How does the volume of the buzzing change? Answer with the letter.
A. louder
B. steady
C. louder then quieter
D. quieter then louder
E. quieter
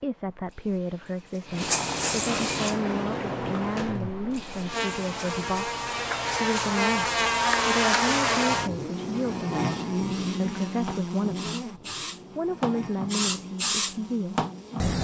C.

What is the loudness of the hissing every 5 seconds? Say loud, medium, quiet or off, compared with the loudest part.
loud, quiet, loud.